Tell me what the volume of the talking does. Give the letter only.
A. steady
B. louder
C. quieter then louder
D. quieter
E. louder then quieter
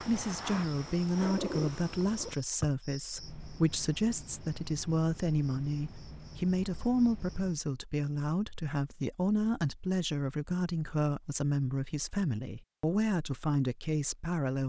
A.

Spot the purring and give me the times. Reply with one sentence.
The purring can be heard from 0.0 to 2.4 s.